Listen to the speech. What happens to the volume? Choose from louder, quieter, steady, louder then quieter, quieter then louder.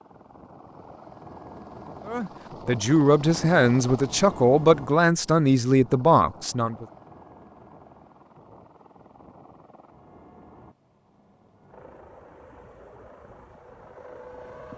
steady.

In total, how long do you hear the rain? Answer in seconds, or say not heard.
not heard.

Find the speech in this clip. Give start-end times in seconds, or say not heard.
2.0-6.8.